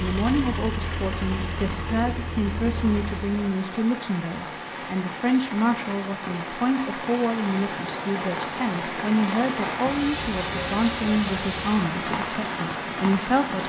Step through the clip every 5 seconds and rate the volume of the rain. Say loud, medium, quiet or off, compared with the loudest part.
medium, loud, loud.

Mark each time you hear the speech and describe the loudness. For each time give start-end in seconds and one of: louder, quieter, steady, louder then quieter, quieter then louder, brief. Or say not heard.
0.0-13.6 steady.